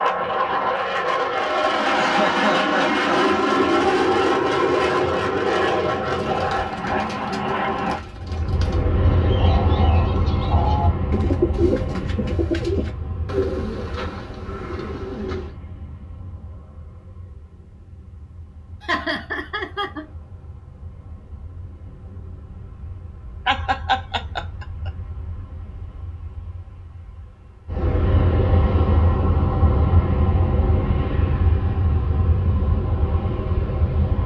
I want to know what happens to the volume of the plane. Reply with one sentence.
The loudness of the plane goes down, then up.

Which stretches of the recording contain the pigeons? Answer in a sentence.
The pigeons can be heard from 6.0 to 15.6 s.